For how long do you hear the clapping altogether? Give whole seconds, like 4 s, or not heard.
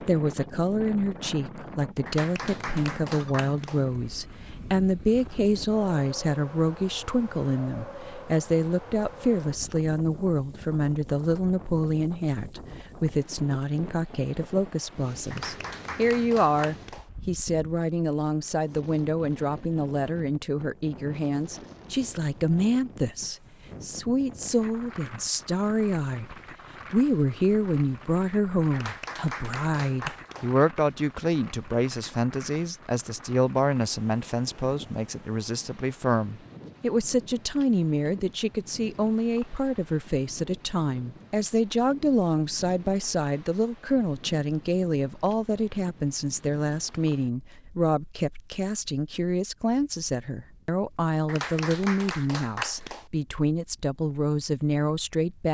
7 s.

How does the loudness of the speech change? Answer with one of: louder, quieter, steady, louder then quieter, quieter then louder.
steady.